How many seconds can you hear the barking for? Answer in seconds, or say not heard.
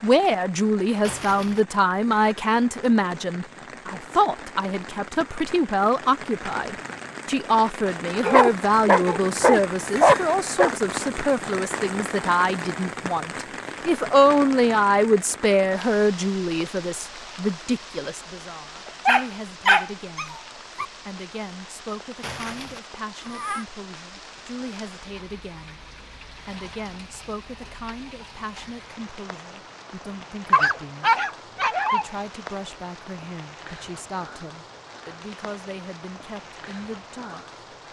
6 s.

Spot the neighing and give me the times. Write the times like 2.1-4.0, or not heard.
1.0-1.6, 22.2-23.6.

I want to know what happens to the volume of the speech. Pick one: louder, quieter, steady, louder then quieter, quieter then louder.
quieter.